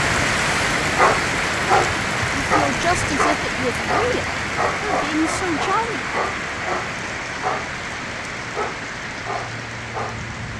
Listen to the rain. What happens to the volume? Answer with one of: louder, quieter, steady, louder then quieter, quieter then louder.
quieter.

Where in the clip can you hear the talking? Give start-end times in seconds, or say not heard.
2.5-6.0.